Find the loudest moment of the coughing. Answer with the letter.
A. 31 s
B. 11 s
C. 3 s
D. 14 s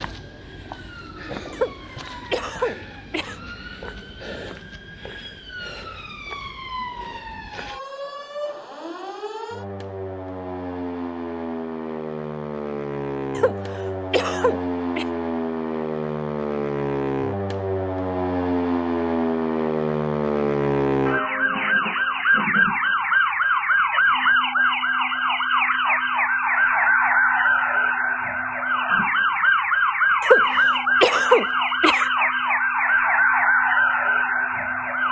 A.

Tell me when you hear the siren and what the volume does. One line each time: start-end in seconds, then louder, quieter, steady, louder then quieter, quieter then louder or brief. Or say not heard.
0.0-35.0 louder.